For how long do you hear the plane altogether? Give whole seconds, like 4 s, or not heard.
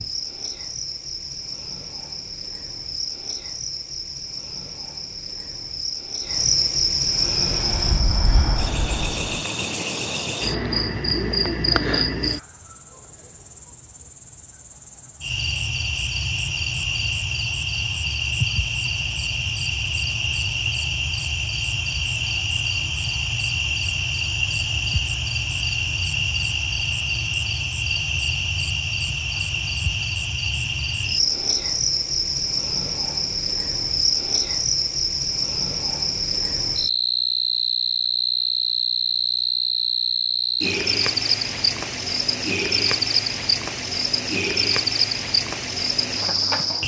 2 s.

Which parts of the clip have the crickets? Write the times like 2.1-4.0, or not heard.
0.0-46.8.